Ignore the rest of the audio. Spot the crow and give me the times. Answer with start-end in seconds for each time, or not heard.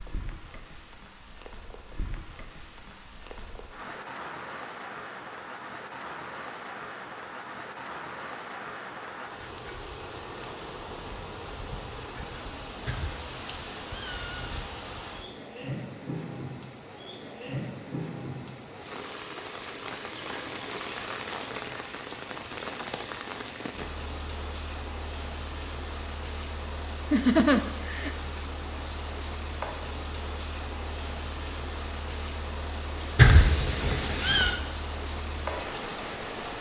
not heard.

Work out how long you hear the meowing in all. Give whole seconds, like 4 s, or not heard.
3 s.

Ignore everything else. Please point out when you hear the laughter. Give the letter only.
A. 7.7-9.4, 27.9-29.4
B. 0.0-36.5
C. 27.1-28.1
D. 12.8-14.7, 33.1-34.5
C.